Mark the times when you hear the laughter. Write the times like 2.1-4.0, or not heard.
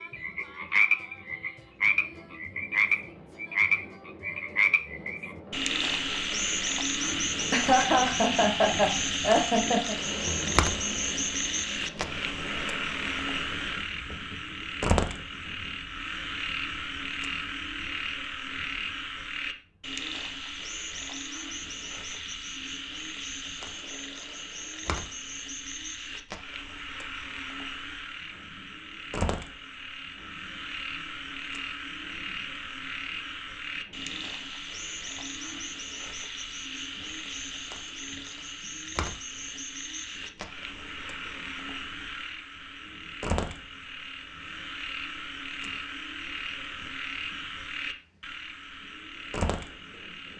7.5-9.9.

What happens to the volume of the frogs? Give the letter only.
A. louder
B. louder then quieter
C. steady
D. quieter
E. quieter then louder
D.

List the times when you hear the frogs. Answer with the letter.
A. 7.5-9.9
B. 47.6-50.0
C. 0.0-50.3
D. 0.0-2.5
C.